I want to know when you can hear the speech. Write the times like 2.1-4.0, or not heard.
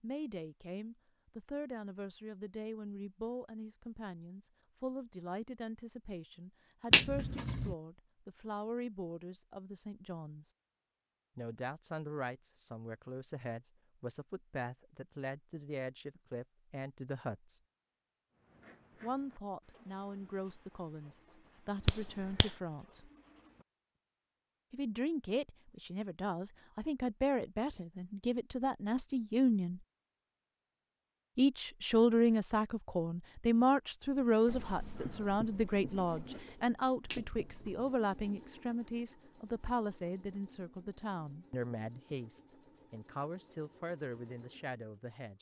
0.0-10.5, 11.3-17.6, 19.0-23.1, 24.7-29.8, 31.4-45.3.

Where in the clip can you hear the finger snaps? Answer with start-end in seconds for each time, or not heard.
6.9-7.8, 21.9-22.5, 37.0-37.9.